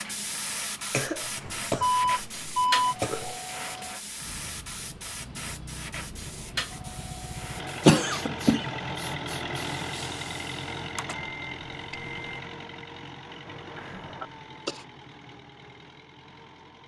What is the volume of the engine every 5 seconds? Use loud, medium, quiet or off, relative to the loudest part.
quiet, loud, loud, quiet.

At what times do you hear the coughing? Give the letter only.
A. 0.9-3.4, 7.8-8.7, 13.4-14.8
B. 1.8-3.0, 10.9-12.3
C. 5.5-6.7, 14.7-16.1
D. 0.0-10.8
A.